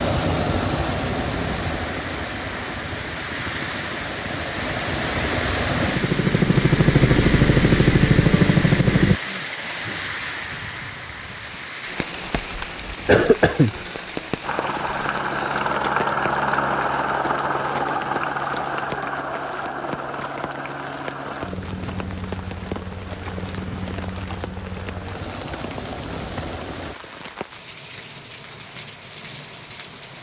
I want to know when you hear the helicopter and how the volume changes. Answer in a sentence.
The helicopter can be heard from 0.0 to 9.2 s, getting quieter then louder; and from 14.4 to 26.9 s, getting quieter.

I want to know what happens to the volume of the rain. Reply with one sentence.
The volume of the rain goes down.